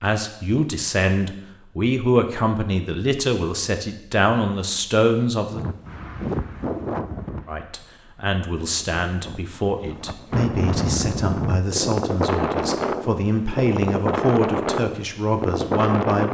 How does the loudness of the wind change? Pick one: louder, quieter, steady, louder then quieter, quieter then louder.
quieter then louder.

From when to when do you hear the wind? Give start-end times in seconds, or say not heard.
5.5-16.2.